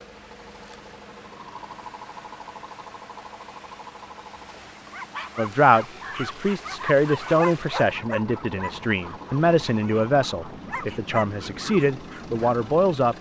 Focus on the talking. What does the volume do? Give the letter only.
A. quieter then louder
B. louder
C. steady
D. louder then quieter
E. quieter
C.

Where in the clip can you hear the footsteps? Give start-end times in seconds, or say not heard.
not heard.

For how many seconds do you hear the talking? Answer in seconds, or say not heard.
8 s.